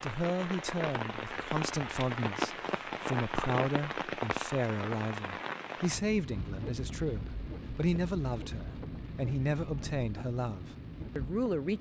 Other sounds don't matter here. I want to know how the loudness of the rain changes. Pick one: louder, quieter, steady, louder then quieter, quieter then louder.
quieter.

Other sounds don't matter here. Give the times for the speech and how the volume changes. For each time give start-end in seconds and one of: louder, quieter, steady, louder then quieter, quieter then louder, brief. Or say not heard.
0.0-11.7 steady.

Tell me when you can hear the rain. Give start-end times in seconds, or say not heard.
0.0-11.7.